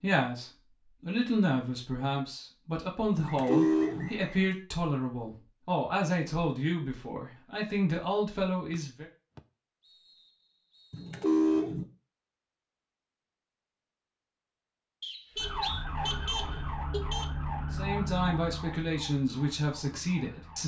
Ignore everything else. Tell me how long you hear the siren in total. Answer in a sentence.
The siren can be heard for 5 seconds in total.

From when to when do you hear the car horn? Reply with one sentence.
You can hear the car horn from 3.1 to 4.1 s, from 10.9 to 11.8 s and from 15.3 to 17.3 s.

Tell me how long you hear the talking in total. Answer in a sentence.
You can hear the talking for 12 seconds altogether.